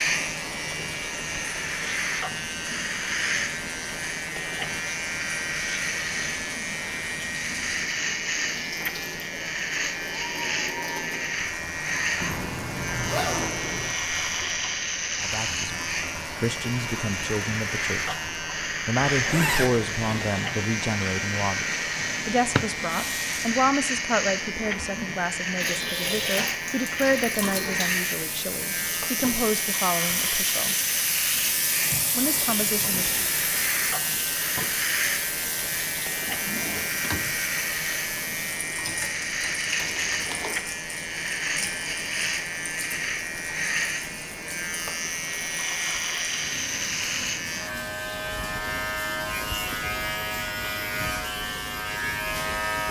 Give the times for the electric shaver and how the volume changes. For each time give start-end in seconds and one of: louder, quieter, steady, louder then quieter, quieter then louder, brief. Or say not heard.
0.0-52.8 steady.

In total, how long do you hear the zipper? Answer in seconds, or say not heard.
4 s.